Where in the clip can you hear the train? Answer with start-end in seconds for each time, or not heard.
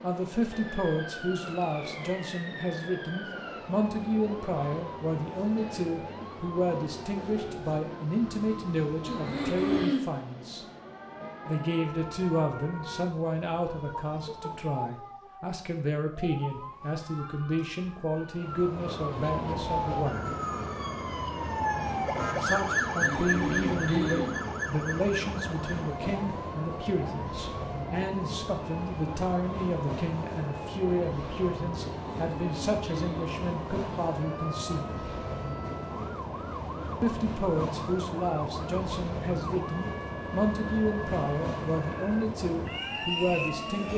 0.0-14.8, 18.4-43.9.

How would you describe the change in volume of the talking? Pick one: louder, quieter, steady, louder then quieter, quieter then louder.
steady.